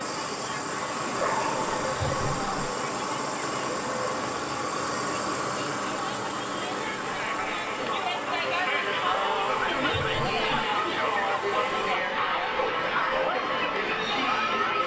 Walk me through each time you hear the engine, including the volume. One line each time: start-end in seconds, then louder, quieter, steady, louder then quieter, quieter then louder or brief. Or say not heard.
0.0-12.0 quieter.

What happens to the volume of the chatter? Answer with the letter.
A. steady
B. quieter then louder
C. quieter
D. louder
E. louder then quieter
D.